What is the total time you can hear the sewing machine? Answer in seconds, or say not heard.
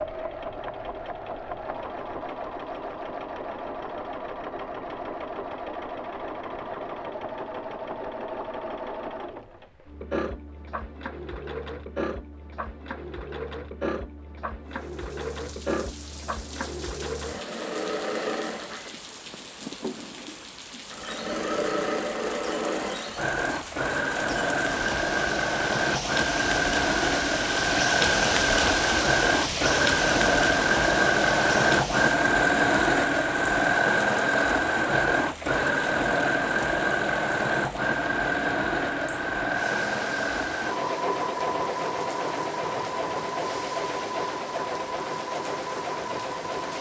47 s.